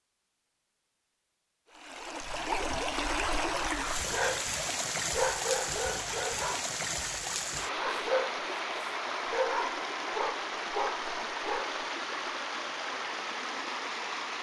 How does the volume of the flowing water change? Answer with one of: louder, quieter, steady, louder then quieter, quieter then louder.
steady.